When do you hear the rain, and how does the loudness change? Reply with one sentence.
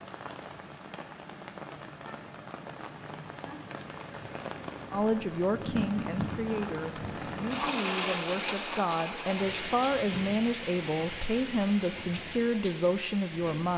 The rain can be heard from 0.0 to 13.7 s, getting louder then quieter.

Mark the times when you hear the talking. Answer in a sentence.
You can hear the talking from 4.9 to 13.7 s.